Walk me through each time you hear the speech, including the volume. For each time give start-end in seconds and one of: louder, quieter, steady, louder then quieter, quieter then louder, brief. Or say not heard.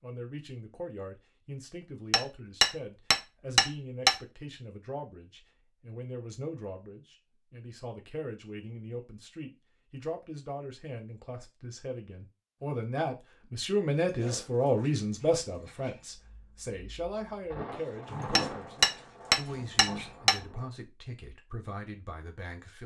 0.0-22.8 louder then quieter.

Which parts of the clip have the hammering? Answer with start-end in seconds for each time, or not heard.
2.1-4.2, 18.4-20.4.